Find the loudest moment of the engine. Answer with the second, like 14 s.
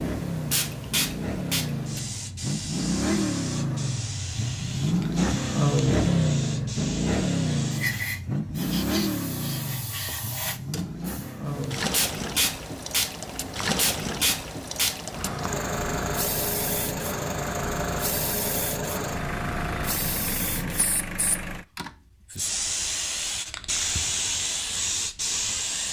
6 s.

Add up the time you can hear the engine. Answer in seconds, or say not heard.
22 s.